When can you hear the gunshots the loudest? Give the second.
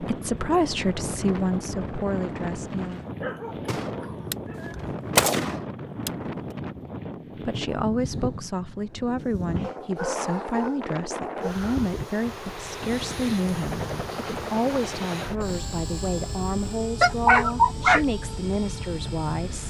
5 s.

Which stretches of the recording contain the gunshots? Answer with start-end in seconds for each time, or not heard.
3.6-6.1.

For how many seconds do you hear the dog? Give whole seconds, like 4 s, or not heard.
5 s.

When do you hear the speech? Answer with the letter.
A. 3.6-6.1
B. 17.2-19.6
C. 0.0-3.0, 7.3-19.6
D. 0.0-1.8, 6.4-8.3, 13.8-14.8
C.